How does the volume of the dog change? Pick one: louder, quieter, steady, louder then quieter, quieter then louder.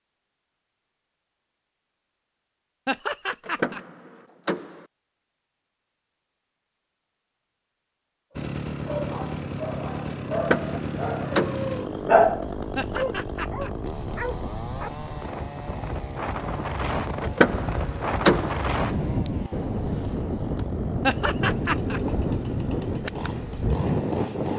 louder then quieter.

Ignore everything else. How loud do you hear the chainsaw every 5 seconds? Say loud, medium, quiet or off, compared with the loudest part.
off, loud, loud, medium, medium.